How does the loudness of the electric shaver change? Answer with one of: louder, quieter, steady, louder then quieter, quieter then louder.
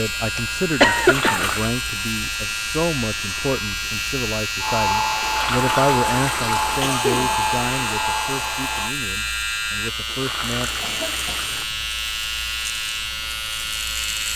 steady.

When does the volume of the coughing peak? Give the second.
1 s.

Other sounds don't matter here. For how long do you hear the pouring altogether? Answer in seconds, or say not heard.
4 s.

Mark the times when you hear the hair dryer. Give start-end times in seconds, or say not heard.
4.6-8.9.